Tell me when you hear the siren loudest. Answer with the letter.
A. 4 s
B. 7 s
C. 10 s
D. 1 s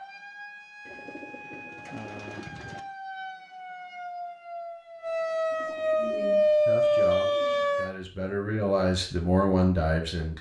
B.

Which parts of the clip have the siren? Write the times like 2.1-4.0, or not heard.
0.0-7.9.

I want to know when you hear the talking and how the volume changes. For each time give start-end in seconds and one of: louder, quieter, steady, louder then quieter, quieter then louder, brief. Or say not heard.
6.0-10.3 louder.